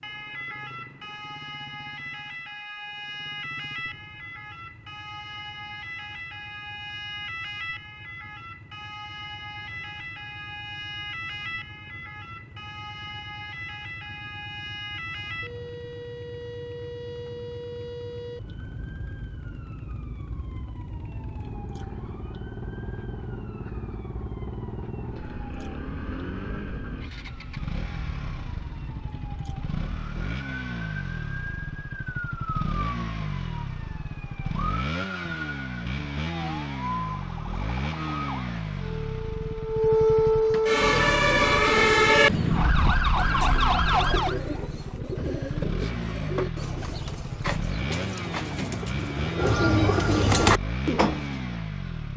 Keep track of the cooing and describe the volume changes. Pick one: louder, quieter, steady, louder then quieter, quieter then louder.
louder.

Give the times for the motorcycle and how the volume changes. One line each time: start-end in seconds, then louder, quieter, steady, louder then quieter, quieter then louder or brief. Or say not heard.
0.0-52.1 louder.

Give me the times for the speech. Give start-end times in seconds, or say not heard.
not heard.